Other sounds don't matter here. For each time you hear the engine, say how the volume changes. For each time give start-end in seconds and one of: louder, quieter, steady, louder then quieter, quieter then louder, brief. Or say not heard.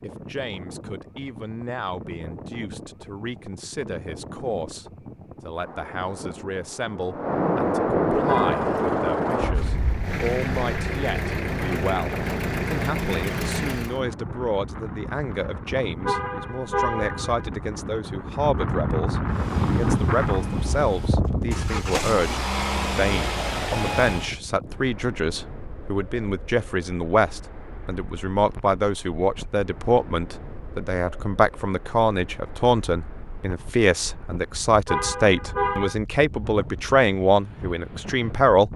8.3-14.0 louder
19.2-24.3 louder.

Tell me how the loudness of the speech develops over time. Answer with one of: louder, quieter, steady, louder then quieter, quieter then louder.
louder.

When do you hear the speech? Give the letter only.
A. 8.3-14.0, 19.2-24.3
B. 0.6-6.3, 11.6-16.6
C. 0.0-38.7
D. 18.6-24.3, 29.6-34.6
C.